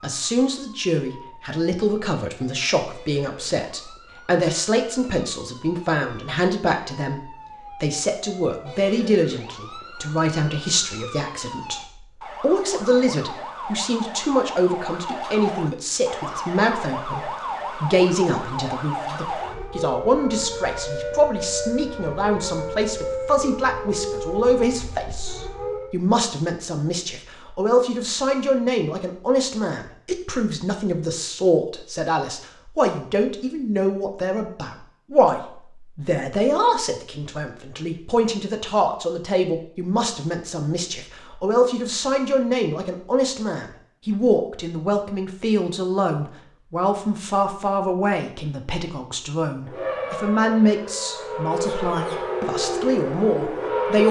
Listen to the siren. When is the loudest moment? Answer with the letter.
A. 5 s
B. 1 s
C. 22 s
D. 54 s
D.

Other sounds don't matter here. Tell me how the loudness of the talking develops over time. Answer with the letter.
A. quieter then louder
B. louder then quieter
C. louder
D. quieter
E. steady
E.